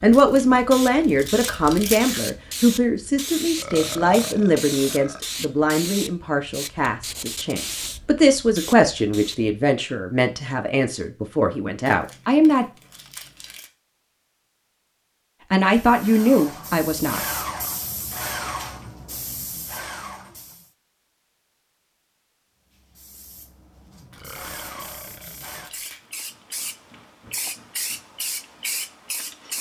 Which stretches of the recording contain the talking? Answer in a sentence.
You can hear the talking from 0.0 to 12.7 s and from 15.5 to 17.2 s.